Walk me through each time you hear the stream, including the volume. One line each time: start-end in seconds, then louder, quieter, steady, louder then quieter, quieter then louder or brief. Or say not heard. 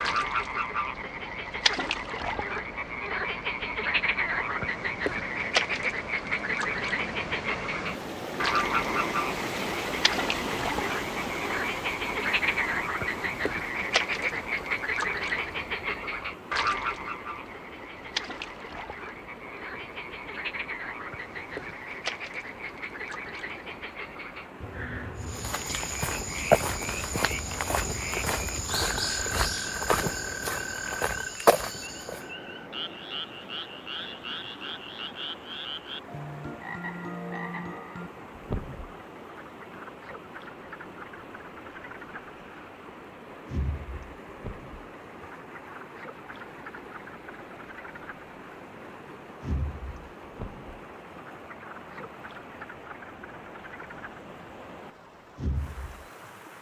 0.0-56.5 quieter.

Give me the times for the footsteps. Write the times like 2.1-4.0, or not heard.
25.2-32.2.